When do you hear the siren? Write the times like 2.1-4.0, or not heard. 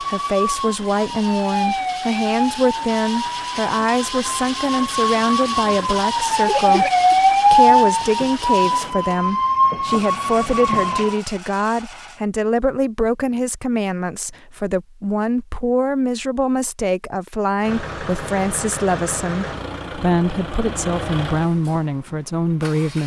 0.0-11.2.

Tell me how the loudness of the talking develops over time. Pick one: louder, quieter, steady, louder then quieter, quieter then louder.
steady.